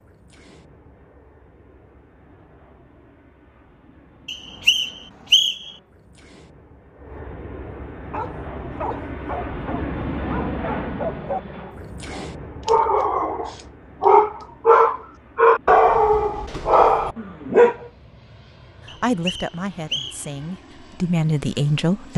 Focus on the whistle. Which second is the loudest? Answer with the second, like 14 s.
5 s.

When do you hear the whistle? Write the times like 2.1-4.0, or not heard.
4.2-5.7, 18.9-20.3.